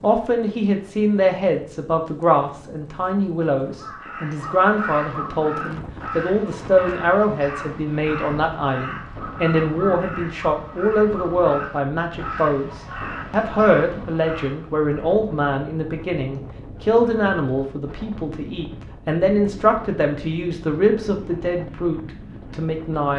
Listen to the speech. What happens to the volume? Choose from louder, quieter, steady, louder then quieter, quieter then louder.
steady.